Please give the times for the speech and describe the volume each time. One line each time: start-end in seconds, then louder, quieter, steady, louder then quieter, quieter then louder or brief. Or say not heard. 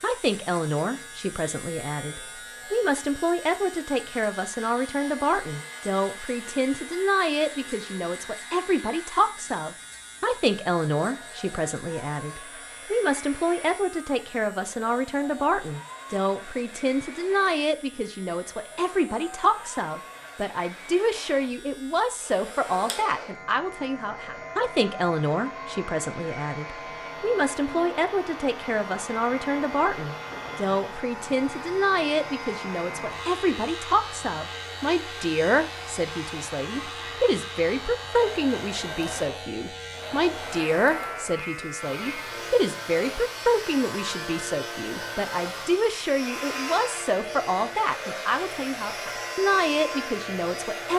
0.0-50.9 steady.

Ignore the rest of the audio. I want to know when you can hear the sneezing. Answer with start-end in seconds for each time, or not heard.
not heard.